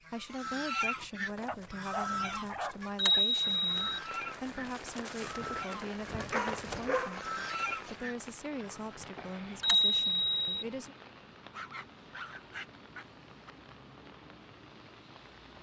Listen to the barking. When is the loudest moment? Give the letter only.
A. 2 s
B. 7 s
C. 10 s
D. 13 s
B.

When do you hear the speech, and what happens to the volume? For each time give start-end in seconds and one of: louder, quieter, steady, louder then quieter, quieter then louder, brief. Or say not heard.
0.1-10.9 steady.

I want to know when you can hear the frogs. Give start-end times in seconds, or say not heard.
not heard.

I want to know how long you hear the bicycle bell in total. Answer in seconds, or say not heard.
2 s.